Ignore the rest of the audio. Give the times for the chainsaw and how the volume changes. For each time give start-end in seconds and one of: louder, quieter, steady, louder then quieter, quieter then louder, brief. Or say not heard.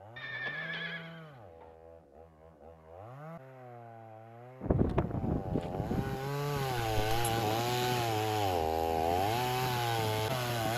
0.0-10.7 louder.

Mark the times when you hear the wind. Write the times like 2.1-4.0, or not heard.
4.6-10.7.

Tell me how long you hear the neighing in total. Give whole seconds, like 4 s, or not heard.
2 s.